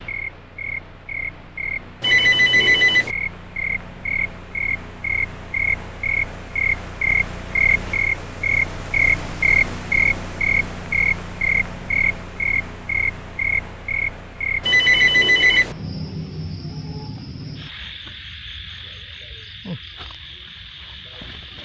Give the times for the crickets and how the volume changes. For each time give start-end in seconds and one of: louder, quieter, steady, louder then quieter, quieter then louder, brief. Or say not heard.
0.0-21.6 louder then quieter.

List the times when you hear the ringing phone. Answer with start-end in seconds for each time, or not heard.
2.0-3.1, 14.6-15.8.